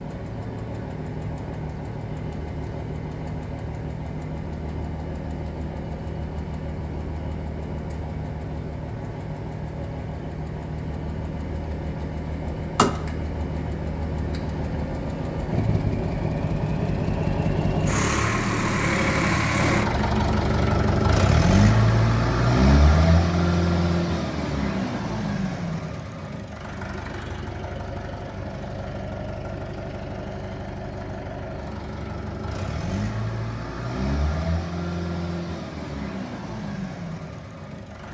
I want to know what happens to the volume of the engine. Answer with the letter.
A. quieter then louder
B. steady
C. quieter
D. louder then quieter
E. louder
D.